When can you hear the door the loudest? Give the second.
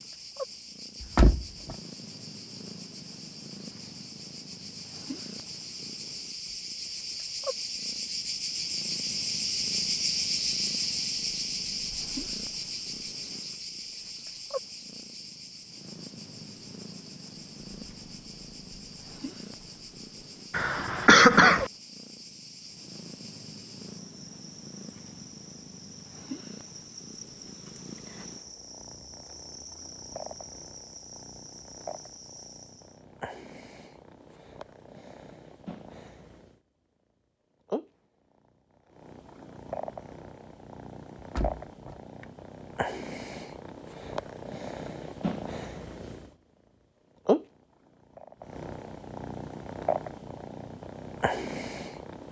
1 s.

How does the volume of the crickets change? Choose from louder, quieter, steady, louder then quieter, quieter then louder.
louder then quieter.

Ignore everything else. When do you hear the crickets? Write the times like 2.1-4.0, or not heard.
0.0-33.0.